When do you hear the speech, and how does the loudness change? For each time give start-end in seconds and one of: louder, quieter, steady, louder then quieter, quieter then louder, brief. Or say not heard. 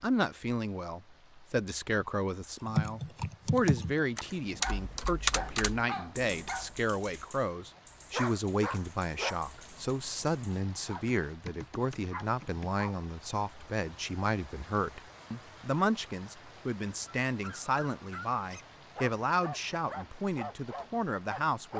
0.0-21.7 steady.